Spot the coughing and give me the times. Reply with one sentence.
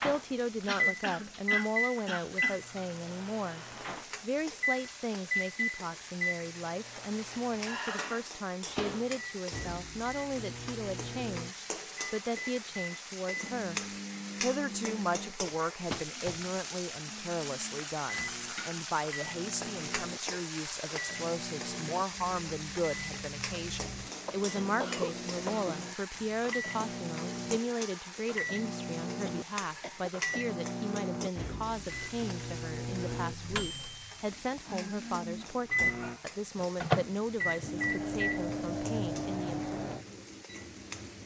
You can hear the coughing from 0.7 to 2.6 s, from 24.2 to 25.7 s and from 29.2 to 30.4 s.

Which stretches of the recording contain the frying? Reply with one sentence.
You can hear the frying from 0.0 to 41.2 s.